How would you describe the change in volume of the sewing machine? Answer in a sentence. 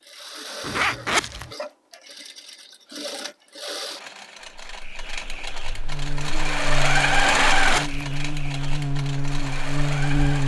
The volume of the sewing machine goes up, then down.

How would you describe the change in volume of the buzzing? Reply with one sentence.
The volume of the buzzing goes up.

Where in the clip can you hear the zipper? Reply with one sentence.
You can hear the zipper from 0.6 to 1.6 s and from 7.2 to 8.1 s.